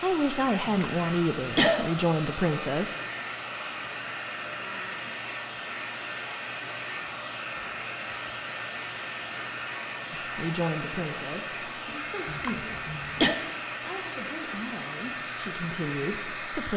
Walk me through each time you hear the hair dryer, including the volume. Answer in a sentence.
You can hear the hair dryer from 0.0 to 16.7 s, at a steady volume.